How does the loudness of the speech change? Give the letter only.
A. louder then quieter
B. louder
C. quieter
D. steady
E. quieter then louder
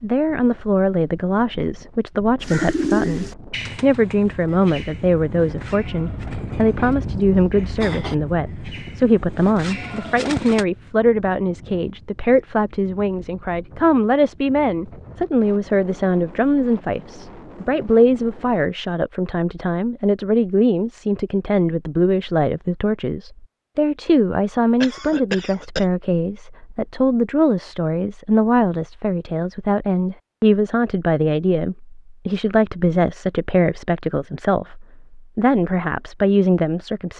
D.